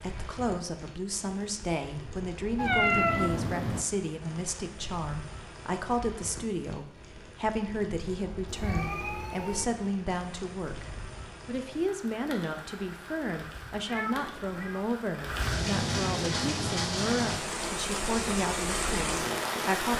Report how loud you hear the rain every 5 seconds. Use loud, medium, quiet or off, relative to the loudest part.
quiet, quiet, quiet, loud.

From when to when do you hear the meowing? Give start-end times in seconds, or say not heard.
2.5-3.9, 8.4-9.7, 13.8-14.9.